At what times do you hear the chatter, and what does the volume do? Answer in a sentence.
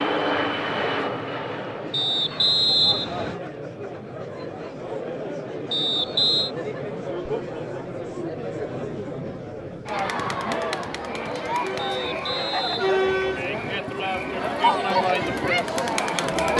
The chatter can be heard from 0.1 to 16.5 s, getting louder.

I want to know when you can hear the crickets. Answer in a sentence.
You can't hear the crickets here.